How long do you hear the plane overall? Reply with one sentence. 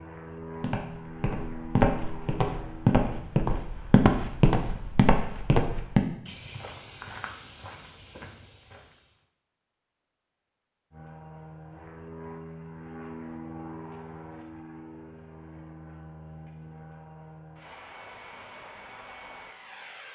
You can hear the plane for 12 seconds altogether.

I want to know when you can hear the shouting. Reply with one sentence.
You can't hear the shouting here.